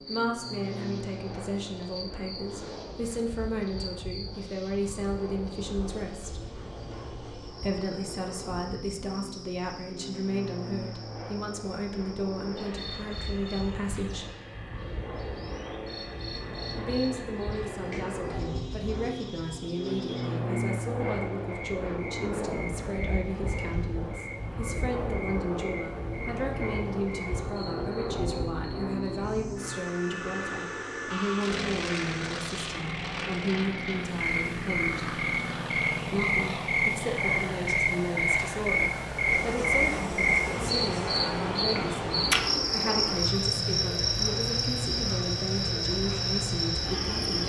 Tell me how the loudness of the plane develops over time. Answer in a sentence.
The loudness of the plane goes up.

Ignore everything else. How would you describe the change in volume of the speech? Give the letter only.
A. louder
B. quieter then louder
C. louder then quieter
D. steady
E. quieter
D.